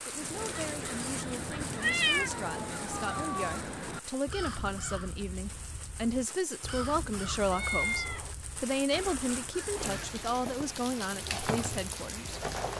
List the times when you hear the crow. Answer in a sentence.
You can hear the crow from 0.1 to 10.2 s.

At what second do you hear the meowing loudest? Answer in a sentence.
The loudest moment of the meowing is at 2 seconds.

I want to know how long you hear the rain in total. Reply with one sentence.
You can hear the rain for 13 seconds altogether.